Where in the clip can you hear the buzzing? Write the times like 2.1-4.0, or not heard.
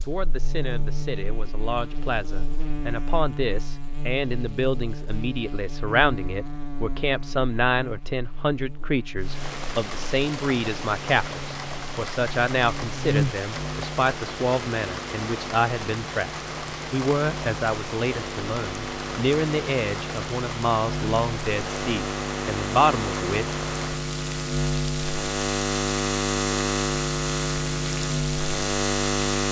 0.0-29.4.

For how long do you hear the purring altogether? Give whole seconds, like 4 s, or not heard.
not heard.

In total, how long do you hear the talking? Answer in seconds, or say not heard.
23 s.